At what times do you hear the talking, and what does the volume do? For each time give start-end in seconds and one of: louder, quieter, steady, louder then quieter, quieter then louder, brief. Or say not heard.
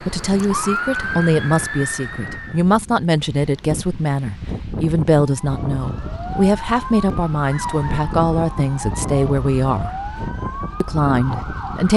0.0-9.9 steady
10.8-11.9 brief.